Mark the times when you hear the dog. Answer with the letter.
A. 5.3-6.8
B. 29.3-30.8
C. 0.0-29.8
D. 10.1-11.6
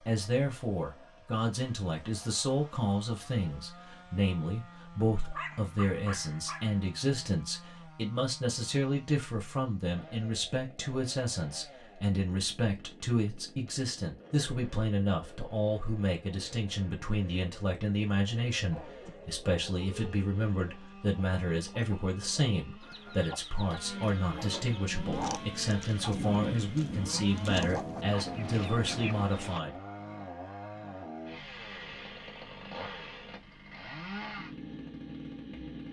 A.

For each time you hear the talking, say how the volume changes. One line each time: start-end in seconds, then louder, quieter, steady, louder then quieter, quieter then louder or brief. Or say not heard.
0.0-29.8 steady.